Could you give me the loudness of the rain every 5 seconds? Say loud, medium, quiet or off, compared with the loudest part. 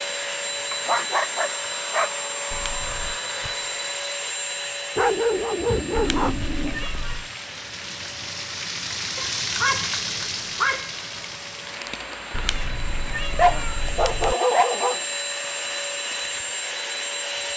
quiet, loud, loud, quiet.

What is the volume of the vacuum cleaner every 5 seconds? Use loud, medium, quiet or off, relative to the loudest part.
loud, medium, medium, loud.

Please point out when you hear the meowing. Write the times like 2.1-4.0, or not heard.
2.5-3.2, 6.0-7.3, 12.3-14.3.